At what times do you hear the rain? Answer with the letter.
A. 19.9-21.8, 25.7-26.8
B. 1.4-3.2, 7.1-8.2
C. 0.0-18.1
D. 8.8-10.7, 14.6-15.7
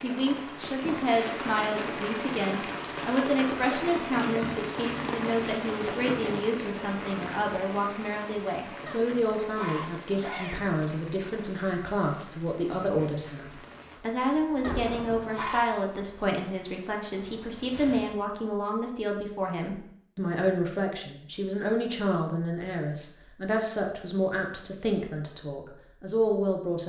C.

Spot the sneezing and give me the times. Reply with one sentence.
The sneezing can be heard from 8.8 to 10.7 s and from 14.6 to 15.7 s.